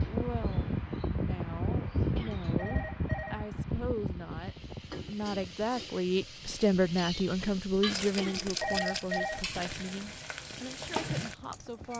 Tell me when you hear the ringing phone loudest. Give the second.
9 s.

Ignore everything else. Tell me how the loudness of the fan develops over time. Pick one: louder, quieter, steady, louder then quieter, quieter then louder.
quieter.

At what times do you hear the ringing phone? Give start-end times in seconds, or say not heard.
2.1-3.4, 8.2-9.4.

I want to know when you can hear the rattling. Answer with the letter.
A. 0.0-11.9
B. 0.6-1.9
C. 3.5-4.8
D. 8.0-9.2
D.